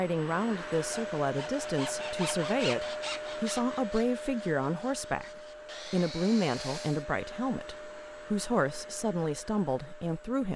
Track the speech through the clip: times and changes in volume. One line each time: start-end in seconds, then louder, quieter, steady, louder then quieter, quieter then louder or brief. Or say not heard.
0.0-10.5 steady.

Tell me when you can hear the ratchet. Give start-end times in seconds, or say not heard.
not heard.